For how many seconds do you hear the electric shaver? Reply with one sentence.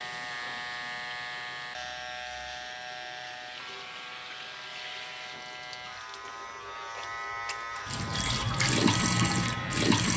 The electric shaver can be heard for 10 seconds in total.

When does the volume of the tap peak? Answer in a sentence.
The loudest moment of the tap is at 9 seconds.